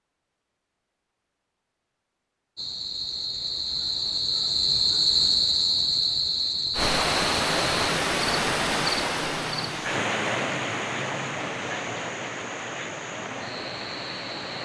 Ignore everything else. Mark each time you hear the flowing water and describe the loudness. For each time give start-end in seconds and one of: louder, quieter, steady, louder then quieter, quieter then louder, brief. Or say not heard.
6.7-14.6 quieter.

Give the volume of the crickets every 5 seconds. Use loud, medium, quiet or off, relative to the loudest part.
loud, loud, quiet.